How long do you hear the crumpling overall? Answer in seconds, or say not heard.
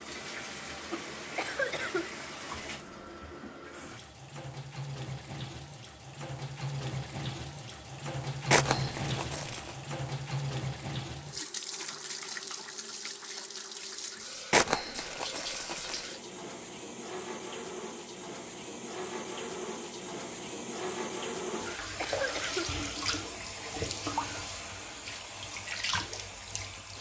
3 s.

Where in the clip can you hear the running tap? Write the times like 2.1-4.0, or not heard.
0.0-26.9.